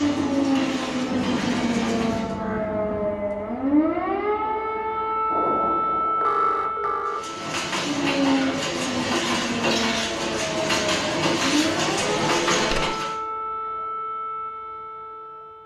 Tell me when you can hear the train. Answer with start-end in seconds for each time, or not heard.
0.0-2.4, 7.0-13.2.